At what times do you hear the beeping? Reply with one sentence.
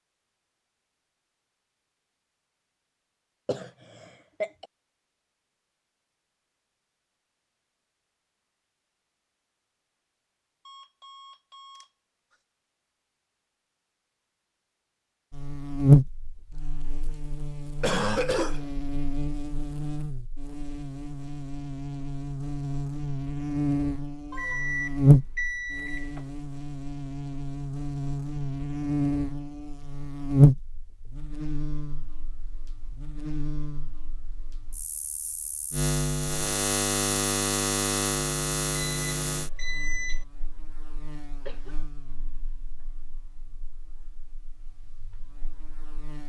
The beeping can be heard from 10.7 to 12.3 s, from 24.3 to 26.2 s and from 38.8 to 40.2 s.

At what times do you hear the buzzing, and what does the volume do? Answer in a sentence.
The buzzing can be heard from 15.3 to 46.2 s, getting quieter.